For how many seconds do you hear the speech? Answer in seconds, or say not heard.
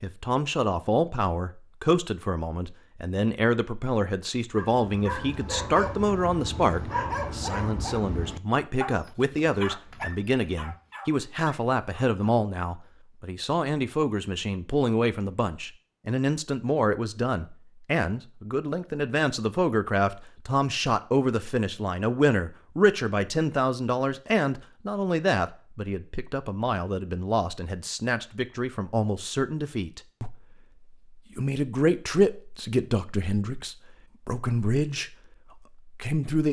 35 s.